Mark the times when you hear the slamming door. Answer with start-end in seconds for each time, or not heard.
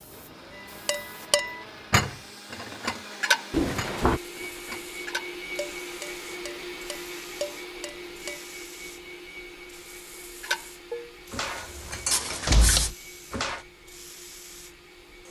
3.5-4.2, 12.4-12.9.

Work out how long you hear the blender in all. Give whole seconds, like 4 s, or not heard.
15 s.